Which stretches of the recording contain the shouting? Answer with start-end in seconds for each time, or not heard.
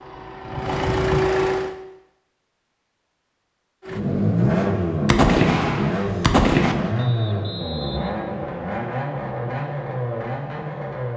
not heard.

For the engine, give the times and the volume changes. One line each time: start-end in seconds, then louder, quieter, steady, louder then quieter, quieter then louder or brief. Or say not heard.
0.0-1.8 brief
3.9-11.1 quieter.